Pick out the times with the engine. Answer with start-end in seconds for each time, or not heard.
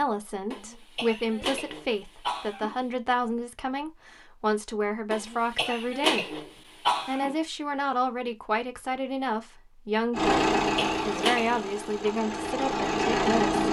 10.1-13.6.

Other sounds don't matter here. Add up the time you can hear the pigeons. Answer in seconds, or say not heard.
not heard.